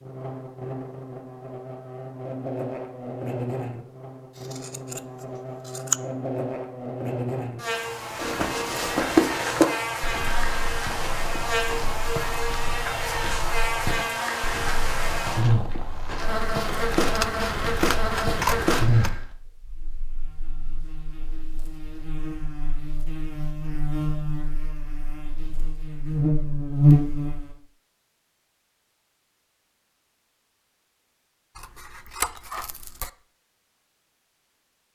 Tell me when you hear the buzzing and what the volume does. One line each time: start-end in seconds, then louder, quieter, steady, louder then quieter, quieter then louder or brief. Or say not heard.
0.0-27.6 louder.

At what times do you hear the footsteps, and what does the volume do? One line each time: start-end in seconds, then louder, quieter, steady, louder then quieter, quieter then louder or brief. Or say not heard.
8.1-19.2 quieter.